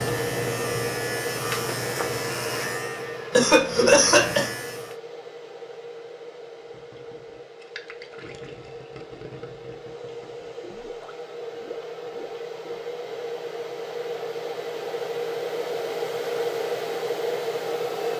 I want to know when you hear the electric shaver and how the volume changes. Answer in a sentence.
You can hear the electric shaver from 0.0 to 5.0 s, getting quieter then louder.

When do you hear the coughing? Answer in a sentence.
The coughing can be heard from 3.3 to 4.5 s.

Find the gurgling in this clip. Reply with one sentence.
The gurgling can be heard from 6.6 to 12.8 s.